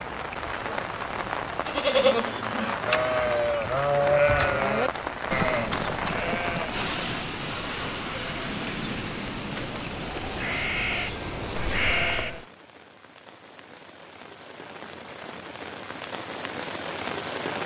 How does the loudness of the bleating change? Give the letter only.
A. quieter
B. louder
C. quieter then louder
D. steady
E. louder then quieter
C.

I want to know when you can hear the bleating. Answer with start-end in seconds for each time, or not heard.
1.6-12.4.